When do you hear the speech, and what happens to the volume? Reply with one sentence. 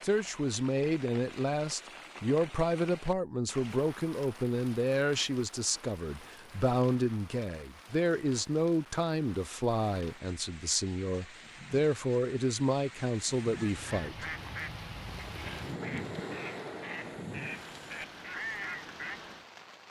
The speech can be heard from 0.0 to 14.2 s, at a steady volume.